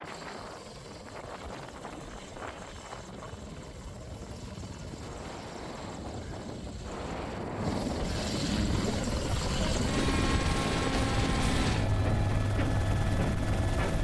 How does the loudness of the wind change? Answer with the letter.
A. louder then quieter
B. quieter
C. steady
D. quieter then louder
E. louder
E.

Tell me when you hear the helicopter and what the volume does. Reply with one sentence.
The helicopter can be heard from 0.0 to 13.9 s, getting louder.